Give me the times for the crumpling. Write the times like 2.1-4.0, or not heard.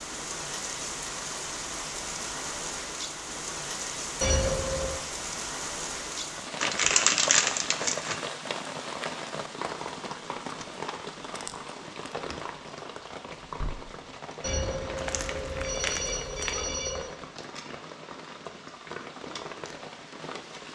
6.6-8.2, 14.9-16.6.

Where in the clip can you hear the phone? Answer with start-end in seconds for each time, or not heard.
4.2-5.0, 14.4-17.1.